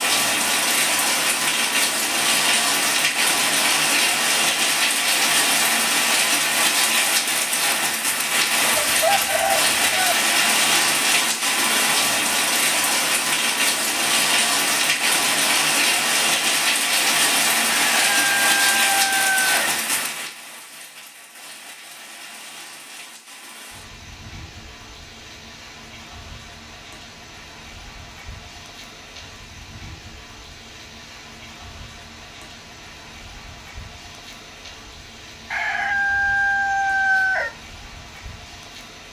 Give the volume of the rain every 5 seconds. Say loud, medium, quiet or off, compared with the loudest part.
loud, loud, loud, loud, quiet, quiet, quiet, quiet.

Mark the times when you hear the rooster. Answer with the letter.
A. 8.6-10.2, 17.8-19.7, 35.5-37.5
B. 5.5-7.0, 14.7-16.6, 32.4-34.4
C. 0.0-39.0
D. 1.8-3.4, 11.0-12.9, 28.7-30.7
A.